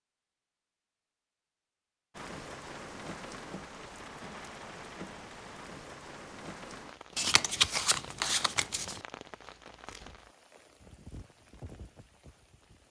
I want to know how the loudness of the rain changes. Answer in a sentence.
The volume of the rain goes down.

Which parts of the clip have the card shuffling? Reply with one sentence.
The card shuffling can be heard from 7.2 to 9.0 s.